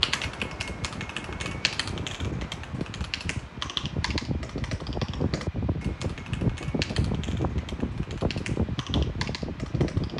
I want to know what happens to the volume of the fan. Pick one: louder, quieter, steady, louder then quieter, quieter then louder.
louder.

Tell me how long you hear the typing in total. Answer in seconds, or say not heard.
10 s.